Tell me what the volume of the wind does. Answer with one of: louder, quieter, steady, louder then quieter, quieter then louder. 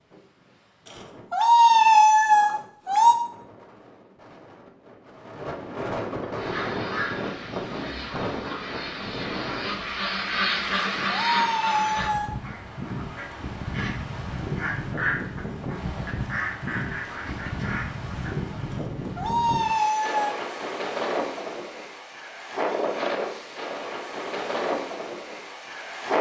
louder.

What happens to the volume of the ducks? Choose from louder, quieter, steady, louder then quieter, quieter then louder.
louder then quieter.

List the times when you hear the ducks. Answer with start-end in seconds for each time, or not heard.
6.3-18.4.